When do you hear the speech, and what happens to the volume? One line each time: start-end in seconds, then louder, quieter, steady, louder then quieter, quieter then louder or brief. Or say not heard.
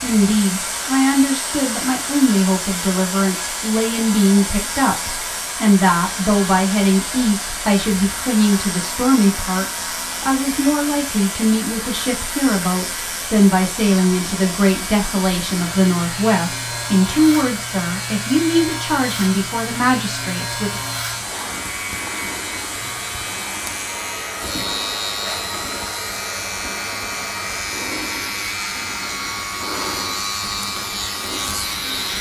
0.0-20.8 steady.